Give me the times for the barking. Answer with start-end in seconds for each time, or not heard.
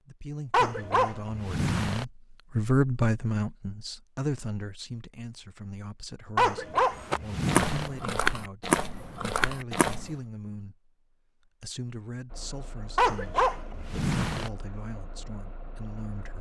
0.5-2.0, 6.3-7.9, 12.9-14.5.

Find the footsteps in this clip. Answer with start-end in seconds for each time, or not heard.
7.0-10.1.